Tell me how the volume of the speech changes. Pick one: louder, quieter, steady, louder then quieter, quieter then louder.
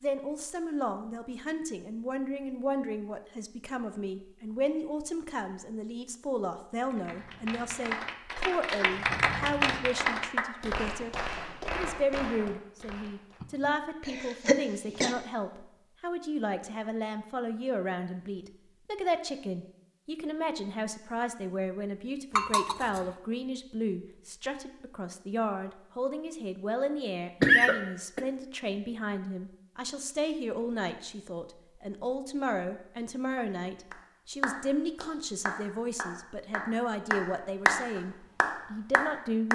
steady.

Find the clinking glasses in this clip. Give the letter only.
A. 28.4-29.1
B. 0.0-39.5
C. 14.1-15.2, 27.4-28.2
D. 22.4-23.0
D.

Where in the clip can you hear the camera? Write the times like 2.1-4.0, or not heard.
not heard.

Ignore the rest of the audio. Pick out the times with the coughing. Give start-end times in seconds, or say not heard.
14.1-15.2, 27.4-28.2.